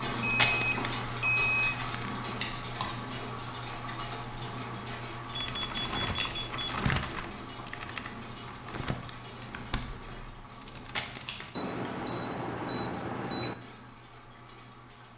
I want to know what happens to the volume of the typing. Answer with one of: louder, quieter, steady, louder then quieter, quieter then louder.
quieter.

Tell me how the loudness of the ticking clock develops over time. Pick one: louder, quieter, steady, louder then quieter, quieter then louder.
quieter.